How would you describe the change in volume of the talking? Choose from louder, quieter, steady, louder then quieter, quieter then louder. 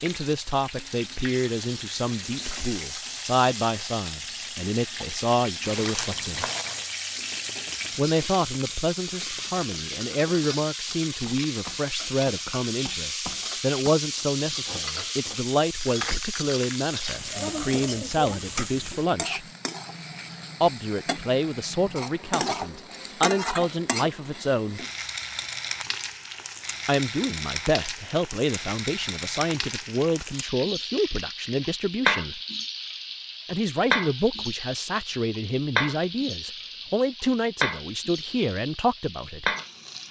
steady.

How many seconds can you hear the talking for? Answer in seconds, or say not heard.
34 s.